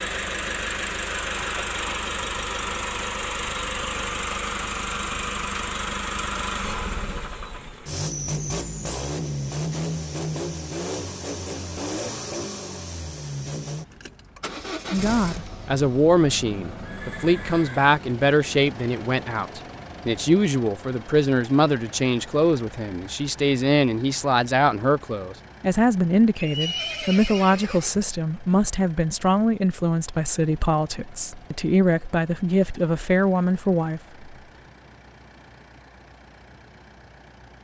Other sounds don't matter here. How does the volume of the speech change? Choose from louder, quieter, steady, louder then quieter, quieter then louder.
steady.